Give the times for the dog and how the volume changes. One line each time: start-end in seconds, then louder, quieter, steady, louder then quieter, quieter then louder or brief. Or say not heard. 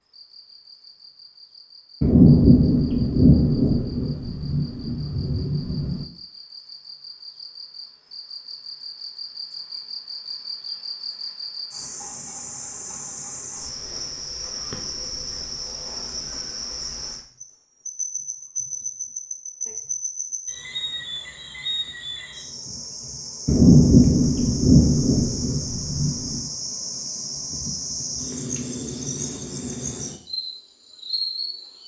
not heard.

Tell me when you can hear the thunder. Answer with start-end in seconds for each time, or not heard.
2.0-6.0, 23.4-26.4.